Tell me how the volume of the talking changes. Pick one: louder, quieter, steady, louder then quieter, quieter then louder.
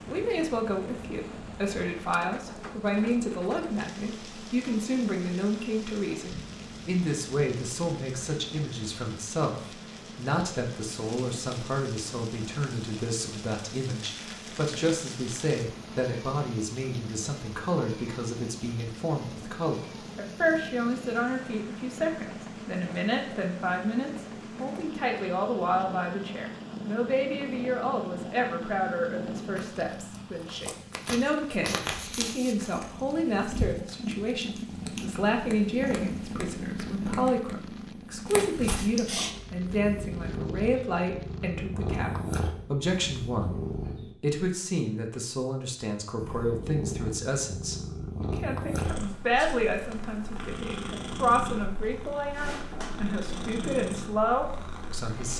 steady.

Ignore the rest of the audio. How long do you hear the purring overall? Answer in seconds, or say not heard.
53 s.